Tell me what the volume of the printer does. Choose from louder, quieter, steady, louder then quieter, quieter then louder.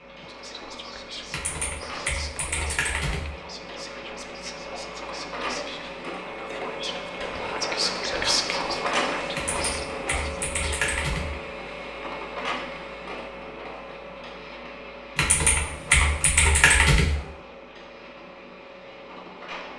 louder then quieter.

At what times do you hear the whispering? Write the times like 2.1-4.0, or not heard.
0.2-10.8.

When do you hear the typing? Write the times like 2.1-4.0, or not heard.
1.3-3.3, 9.3-11.3, 15.2-17.1.